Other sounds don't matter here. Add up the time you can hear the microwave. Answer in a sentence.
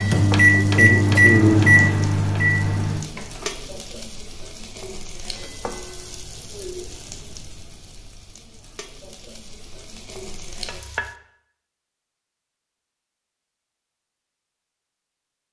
You can hear the microwave for 3 seconds altogether.